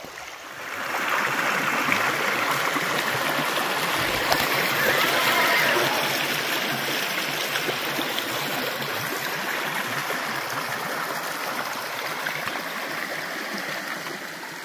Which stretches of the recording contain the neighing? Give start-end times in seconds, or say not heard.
4.8-6.2.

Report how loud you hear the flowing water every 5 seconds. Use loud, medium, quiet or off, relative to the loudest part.
loud, loud, medium.